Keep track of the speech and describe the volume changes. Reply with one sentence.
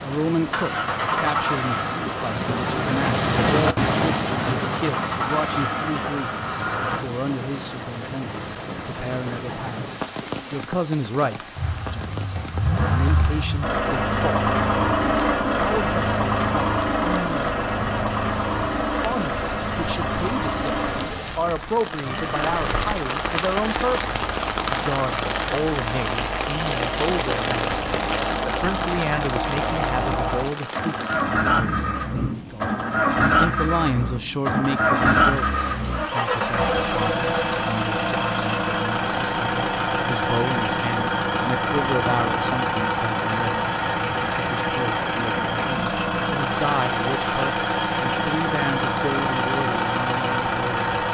The volume of the speech stays about the same.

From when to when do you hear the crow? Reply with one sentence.
You can't hear the crow here.